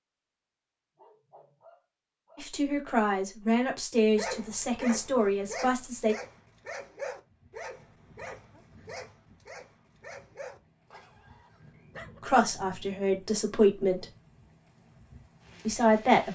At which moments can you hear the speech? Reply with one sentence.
You can hear the speech from 2.4 to 6.2 s, from 12.2 to 14.1 s and from 15.7 to 16.2 s.